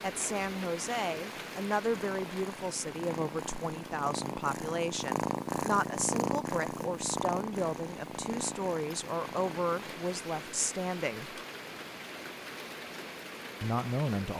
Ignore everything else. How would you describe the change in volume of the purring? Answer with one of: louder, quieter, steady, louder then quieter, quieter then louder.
louder then quieter.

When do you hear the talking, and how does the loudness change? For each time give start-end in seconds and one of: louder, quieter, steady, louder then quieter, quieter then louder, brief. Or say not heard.
0.0-11.4 steady
13.6-14.3 brief.